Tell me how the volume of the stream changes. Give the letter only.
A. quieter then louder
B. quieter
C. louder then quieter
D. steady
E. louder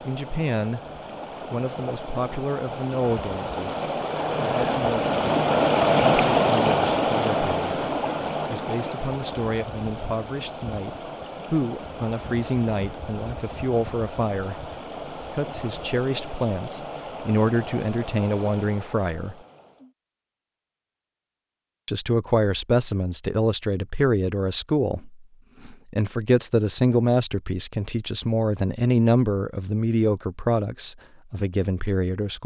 C.